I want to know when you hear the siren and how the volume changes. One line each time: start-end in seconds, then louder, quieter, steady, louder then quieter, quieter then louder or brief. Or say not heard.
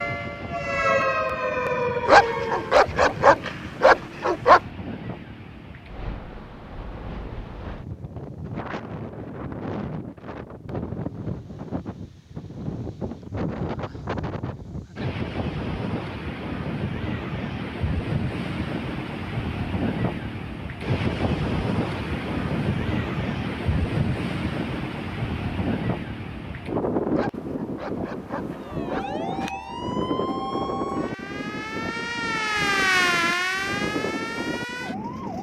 0.0-2.8 brief
28.5-35.3 louder then quieter.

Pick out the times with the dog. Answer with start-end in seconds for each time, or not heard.
2.0-4.6, 27.1-29.4.